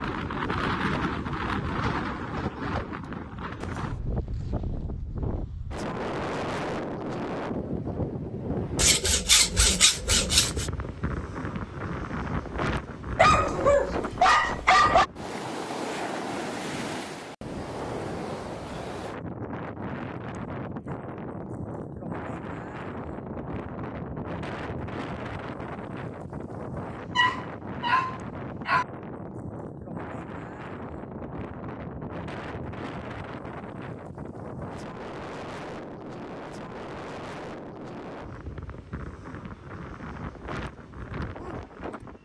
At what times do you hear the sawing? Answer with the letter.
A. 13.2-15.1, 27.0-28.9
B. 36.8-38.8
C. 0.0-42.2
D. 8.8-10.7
D.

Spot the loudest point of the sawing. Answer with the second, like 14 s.
9 s.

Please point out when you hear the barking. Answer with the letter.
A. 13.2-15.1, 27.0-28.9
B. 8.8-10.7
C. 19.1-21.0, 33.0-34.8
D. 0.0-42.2
A.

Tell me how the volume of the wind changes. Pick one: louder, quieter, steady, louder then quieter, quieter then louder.
quieter.